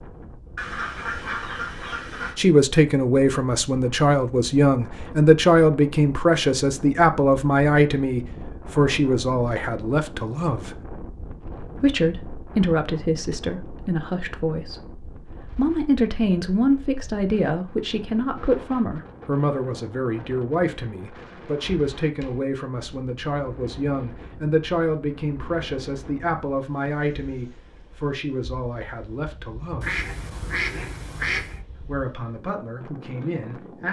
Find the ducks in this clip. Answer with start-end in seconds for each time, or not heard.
0.6-2.4, 29.8-31.6.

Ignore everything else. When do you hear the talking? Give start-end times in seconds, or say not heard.
2.4-10.8, 11.8-30.0, 31.8-33.8.